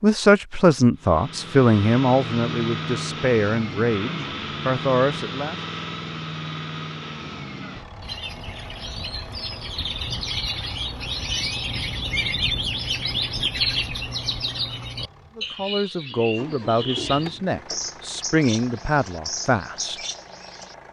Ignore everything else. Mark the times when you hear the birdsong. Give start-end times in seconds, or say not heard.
8.0-20.8.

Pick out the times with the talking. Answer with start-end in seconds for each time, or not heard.
0.0-5.6, 15.3-20.1.